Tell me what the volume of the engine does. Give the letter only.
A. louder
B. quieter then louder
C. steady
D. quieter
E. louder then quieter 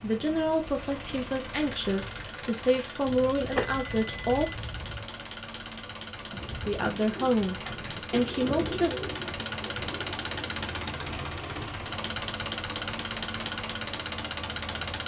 A.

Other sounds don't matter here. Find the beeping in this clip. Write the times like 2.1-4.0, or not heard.
3.0-5.0.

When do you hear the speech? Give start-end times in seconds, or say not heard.
0.0-4.5, 6.5-8.9.